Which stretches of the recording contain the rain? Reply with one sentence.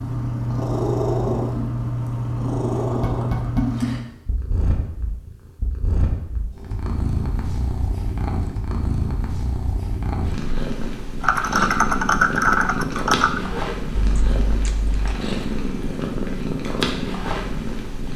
You can't hear the rain here.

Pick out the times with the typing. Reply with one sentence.
The typing can be heard from 11.2 to 15.2 s.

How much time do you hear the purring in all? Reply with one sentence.
The purring can be heard for 18 seconds in total.